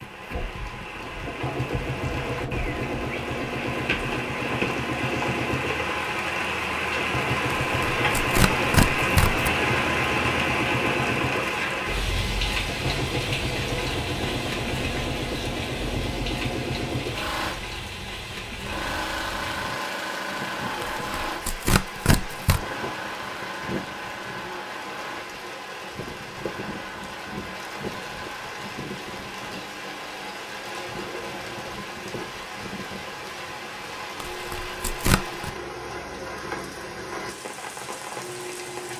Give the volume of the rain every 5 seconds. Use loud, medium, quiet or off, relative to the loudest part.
medium, loud, loud, medium, medium, medium, medium, medium.